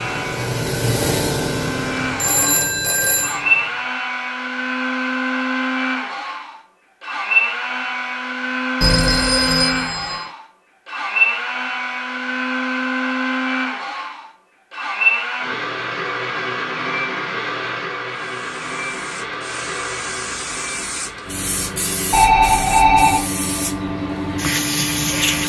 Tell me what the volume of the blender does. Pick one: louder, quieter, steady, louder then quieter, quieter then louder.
quieter.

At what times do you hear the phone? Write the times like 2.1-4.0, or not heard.
2.1-3.4, 8.8-10.3, 22.1-23.2.